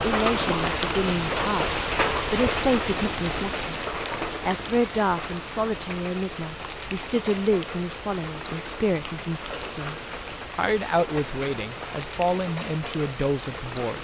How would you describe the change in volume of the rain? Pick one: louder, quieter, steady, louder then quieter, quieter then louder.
quieter.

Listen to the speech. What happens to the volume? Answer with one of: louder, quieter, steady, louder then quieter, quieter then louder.
steady.